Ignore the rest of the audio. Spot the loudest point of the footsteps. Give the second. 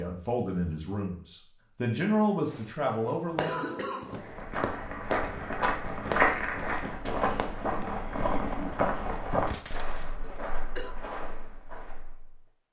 6 s.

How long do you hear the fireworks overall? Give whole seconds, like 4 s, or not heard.
7 s.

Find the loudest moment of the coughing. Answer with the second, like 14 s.
4 s.